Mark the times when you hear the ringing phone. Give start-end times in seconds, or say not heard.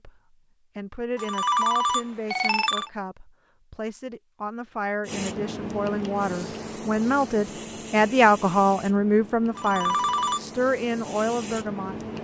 1.1-2.9, 9.6-10.4.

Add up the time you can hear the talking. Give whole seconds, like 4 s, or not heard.
12 s.